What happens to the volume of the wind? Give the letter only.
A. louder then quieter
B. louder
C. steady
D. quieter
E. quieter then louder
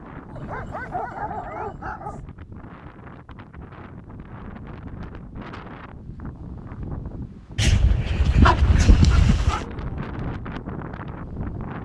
B.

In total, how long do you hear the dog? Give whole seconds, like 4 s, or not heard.
4 s.